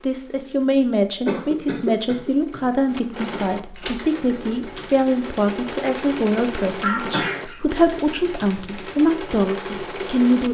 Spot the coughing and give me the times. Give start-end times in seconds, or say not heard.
1.2-3.4, 6.8-7.6.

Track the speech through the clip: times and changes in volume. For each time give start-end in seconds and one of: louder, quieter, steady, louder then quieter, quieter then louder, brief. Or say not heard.
0.0-10.4 steady.